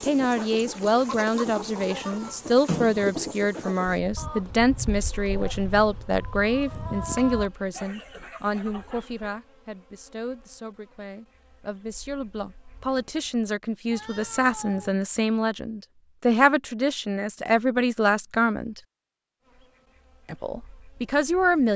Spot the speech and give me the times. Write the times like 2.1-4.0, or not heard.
0.0-18.8, 20.2-21.7.